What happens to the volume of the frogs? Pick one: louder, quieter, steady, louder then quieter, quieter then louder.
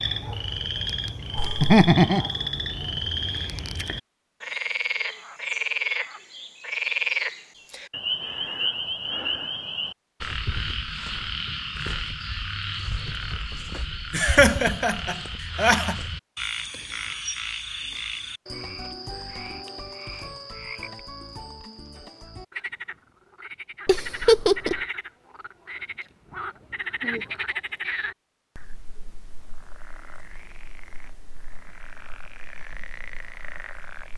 quieter.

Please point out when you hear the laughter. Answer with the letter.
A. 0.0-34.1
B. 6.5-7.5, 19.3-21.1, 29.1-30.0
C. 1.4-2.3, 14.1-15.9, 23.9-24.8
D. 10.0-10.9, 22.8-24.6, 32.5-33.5
C.